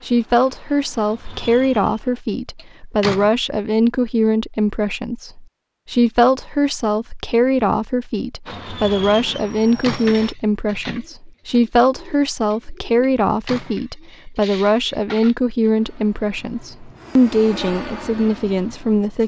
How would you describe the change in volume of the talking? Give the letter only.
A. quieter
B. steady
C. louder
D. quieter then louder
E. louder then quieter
B.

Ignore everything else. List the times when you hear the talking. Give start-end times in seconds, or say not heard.
0.0-19.2.